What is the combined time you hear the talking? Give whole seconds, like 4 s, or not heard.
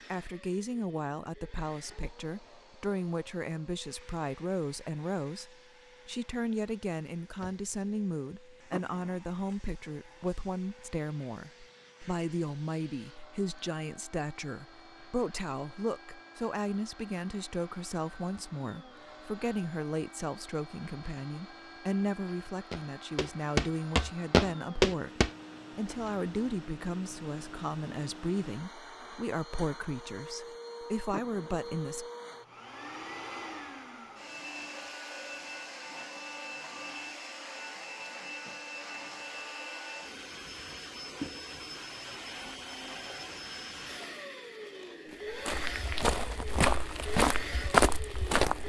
32 s.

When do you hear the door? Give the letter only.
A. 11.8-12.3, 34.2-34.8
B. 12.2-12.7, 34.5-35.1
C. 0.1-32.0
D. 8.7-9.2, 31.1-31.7
D.